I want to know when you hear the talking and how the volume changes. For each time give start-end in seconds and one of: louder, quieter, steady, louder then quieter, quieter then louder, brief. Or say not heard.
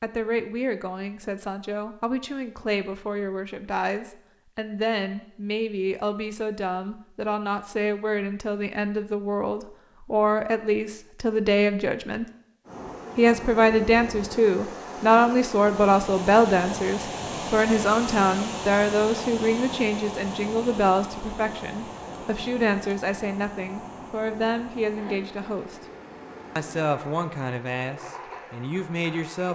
0.0-12.2 louder
13.2-25.9 quieter
26.6-29.4 brief.